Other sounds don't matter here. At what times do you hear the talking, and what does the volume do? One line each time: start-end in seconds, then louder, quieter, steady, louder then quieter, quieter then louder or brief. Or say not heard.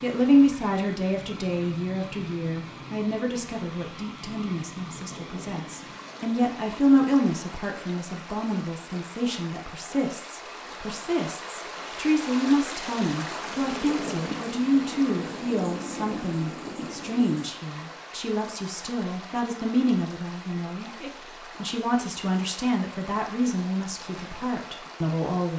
0.0-25.5 steady.